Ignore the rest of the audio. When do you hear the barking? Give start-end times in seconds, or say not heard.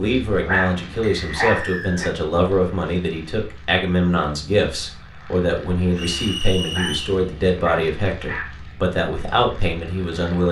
0.4-2.1, 6.7-8.6.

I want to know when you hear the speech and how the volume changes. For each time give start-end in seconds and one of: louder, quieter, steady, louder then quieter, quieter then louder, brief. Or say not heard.
0.0-10.4 steady.